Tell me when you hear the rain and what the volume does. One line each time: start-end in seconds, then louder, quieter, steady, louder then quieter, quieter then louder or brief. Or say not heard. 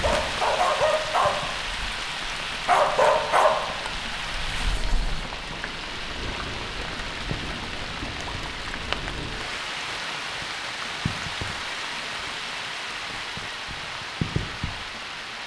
0.0-15.4 steady.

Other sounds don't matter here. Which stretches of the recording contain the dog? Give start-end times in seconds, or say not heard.
0.0-5.3.